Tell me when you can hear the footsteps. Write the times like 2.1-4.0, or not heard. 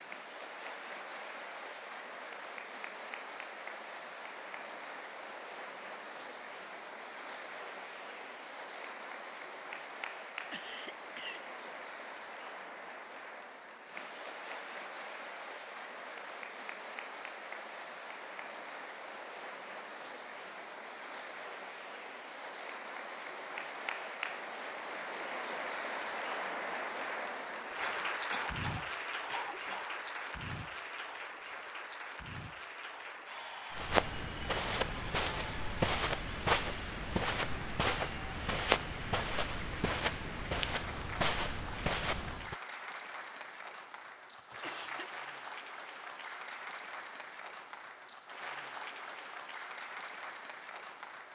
33.7-42.5.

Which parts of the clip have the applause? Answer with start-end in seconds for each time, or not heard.
0.0-51.2.